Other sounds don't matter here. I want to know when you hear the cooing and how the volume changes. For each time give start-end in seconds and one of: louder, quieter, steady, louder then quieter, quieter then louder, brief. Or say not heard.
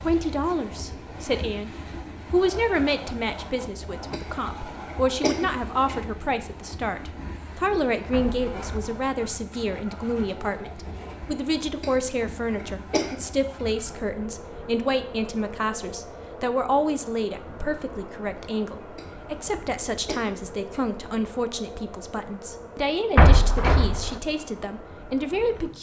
not heard.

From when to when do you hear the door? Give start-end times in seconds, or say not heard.
8.1-8.9, 23.1-24.2.